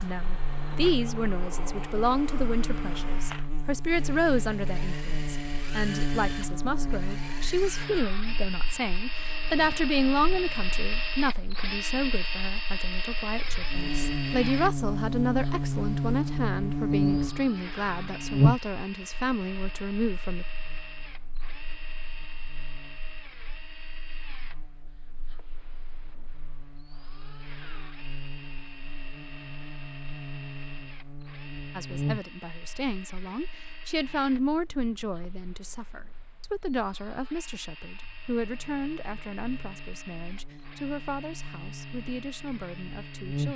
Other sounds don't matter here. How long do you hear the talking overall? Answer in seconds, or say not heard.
32 s.